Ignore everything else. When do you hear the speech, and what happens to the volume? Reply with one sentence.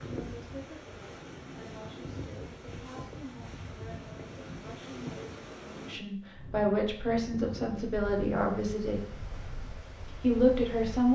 You can hear the speech from 0.1 to 9.0 s, getting louder; and briefly from 10.2 to 11.1 s.